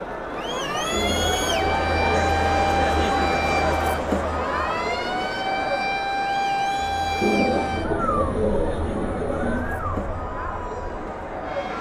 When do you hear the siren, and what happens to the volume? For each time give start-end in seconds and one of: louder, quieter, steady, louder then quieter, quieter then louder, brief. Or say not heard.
0.2-11.7 quieter.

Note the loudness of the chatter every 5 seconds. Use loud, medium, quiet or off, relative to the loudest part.
loud, medium, medium.